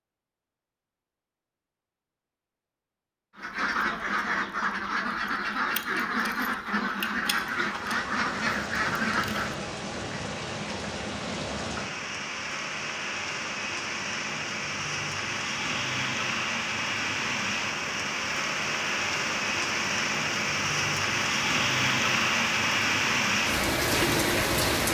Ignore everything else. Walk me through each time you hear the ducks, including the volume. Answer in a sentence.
You can hear the ducks from 3.4 to 9.6 s, at a steady volume.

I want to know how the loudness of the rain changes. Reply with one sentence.
The volume of the rain goes up.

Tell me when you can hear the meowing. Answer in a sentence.
You can't hear the meowing here.